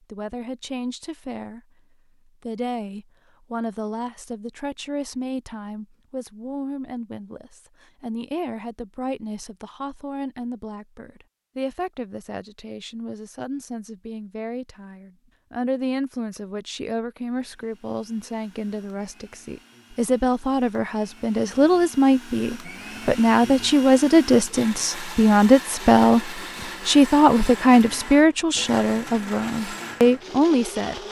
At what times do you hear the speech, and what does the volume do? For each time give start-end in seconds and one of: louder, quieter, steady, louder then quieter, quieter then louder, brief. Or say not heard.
0.1-1.6 brief
2.2-26.2 louder
26.9-31.0 quieter then louder.